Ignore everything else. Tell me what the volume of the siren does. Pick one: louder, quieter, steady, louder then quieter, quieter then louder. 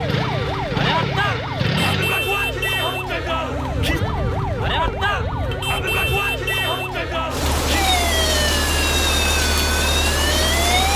steady.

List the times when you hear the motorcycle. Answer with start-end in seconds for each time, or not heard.
0.0-2.1.